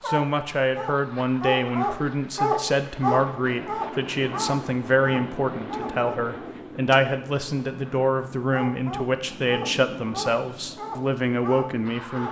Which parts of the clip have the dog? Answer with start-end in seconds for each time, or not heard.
0.0-6.2, 8.5-12.2.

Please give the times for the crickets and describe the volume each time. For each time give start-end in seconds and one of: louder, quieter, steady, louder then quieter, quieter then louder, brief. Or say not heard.
not heard.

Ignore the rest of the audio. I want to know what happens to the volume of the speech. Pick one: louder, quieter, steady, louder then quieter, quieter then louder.
steady.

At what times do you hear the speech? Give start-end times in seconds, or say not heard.
0.1-12.2.